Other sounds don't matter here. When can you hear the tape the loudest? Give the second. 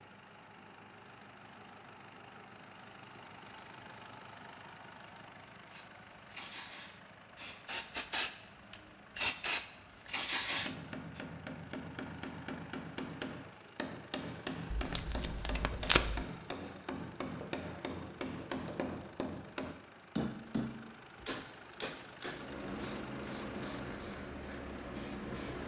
16 s.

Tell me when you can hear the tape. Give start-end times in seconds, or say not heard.
14.7-16.2.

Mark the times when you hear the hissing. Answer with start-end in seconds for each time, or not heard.
5.7-11.2, 22.3-25.6.